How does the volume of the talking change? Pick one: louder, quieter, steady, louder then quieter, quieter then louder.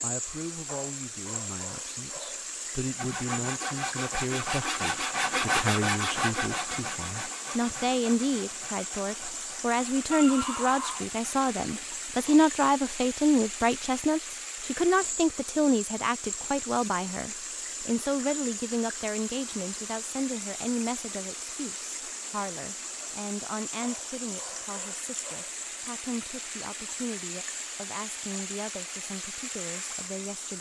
louder then quieter.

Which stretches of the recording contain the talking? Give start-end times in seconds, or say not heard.
0.0-30.5.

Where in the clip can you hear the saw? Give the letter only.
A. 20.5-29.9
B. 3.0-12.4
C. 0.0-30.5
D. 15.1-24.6
B.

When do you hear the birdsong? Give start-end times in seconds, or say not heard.
not heard.